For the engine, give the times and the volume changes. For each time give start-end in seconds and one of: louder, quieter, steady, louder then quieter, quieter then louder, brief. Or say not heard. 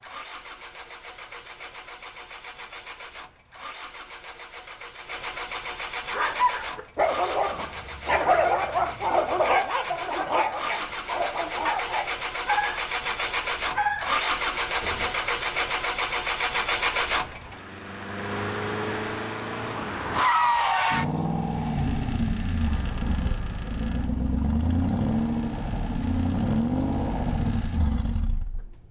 0.0-28.8 louder.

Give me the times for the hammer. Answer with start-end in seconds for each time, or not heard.
not heard.